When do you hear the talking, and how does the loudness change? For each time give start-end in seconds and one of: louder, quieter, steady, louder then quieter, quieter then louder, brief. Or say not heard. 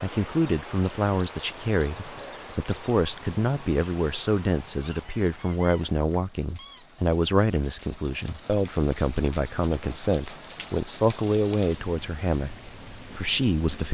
0.0-13.8 steady.